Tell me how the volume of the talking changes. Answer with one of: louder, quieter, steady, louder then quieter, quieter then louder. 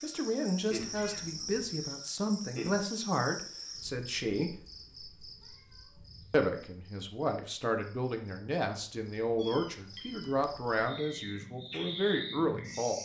steady.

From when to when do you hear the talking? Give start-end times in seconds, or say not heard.
0.0-4.7, 6.3-13.0.